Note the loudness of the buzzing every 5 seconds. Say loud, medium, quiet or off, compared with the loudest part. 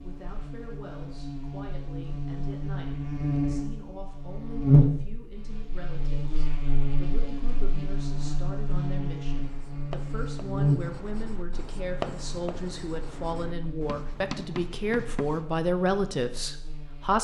loud, medium, medium, quiet.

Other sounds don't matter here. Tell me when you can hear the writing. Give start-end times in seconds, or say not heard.
9.4-15.4.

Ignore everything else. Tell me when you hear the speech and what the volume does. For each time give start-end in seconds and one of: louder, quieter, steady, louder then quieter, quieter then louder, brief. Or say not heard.
0.0-17.2 louder.